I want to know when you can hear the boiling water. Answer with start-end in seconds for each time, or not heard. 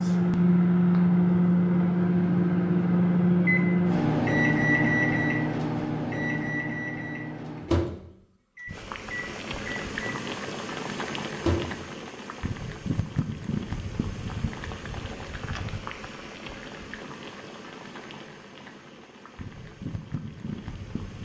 8.7-21.2.